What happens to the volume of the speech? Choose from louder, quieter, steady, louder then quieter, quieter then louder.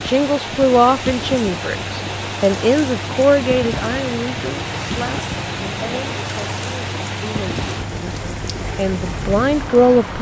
quieter then louder.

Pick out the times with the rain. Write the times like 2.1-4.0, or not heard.
0.0-10.1.